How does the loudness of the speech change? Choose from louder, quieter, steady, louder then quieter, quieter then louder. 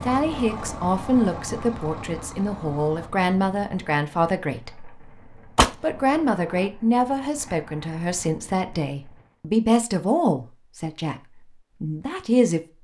steady.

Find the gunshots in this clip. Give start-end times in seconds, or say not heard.
5.5-6.7.